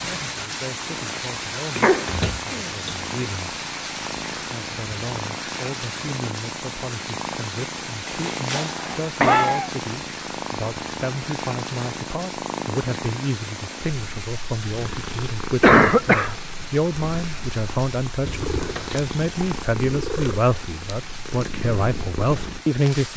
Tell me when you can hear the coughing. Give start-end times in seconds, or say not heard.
1.8-2.8, 8.5-9.7, 15.6-16.4.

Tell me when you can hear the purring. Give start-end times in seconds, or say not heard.
0.0-23.1.